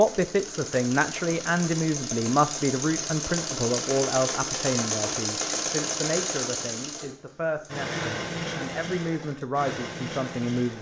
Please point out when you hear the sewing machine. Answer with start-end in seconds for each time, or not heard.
0.0-10.7.